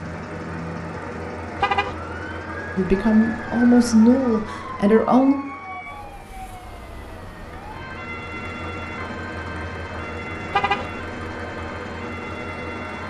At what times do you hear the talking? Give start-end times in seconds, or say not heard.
2.8-5.3.